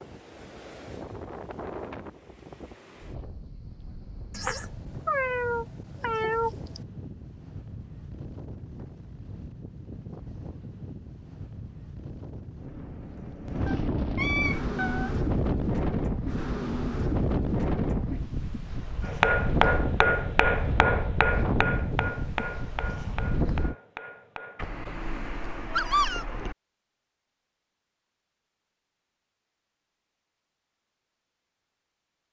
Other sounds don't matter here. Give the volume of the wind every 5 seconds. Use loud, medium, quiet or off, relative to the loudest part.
quiet, quiet, medium, loud, loud, off, off.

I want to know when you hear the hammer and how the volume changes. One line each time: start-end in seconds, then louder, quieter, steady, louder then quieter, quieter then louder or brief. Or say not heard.
19.0-24.7 quieter.